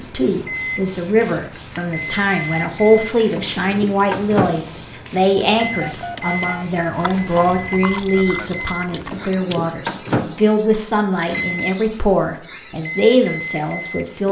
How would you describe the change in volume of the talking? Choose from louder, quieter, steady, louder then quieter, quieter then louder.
steady.